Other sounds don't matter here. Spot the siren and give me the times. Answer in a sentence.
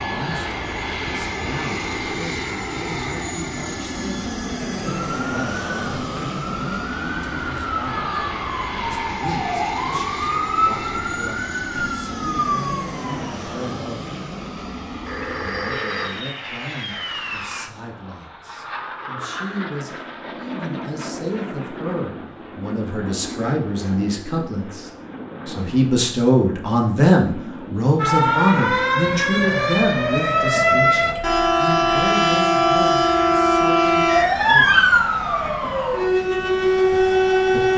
You can hear the siren from 4.8 to 13.3 s and from 27.9 to 37.7 s.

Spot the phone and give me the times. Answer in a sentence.
The phone can be heard from 15.0 to 16.2 s.